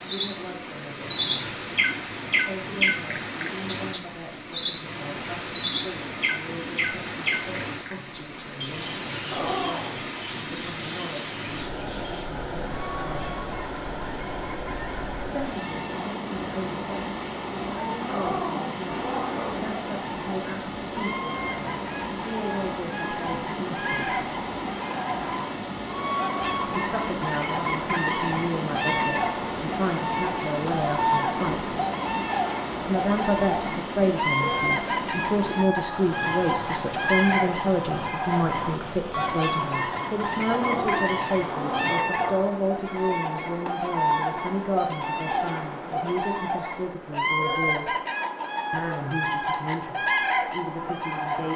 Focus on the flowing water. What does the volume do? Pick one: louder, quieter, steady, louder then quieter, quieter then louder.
steady.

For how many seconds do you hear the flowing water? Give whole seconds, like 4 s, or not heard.
42 s.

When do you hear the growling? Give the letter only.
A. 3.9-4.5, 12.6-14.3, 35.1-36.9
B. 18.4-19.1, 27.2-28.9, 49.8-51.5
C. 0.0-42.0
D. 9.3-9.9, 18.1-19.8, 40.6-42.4
D.